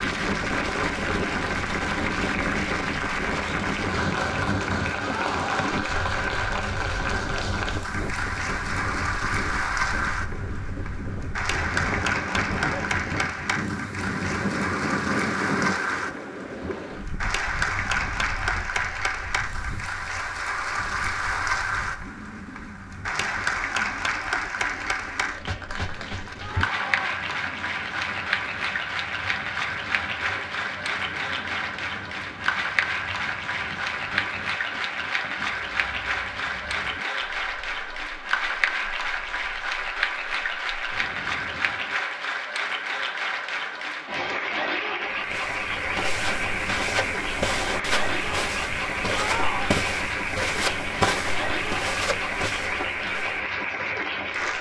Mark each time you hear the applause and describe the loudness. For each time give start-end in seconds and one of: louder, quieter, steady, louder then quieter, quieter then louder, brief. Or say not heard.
0.0-54.5 steady.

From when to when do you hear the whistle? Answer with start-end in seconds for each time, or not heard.
not heard.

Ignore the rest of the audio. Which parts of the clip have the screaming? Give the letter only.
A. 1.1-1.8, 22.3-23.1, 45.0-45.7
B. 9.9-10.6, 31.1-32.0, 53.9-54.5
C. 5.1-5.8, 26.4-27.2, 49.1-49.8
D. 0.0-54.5
C.